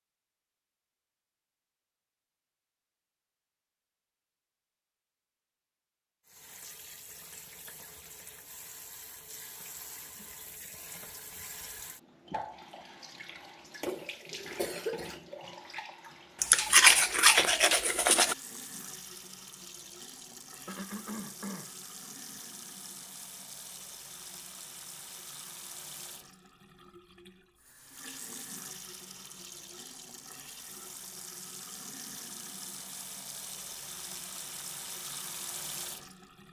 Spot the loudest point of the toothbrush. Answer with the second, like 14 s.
17 s.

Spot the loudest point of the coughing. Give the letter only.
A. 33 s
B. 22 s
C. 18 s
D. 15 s
D.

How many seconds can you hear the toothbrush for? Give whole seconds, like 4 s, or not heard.
2 s.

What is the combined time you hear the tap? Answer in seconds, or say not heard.
30 s.